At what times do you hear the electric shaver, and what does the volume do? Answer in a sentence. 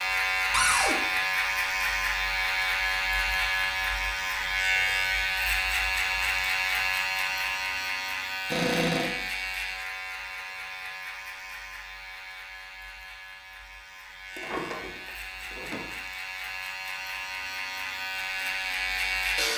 The electric shaver can be heard from 0.0 to 19.5 s, getting quieter then louder.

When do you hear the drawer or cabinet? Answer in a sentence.
You can hear the drawer or cabinet from 0.5 to 0.9 s, from 8.5 to 9.1 s and from 14.3 to 15.8 s.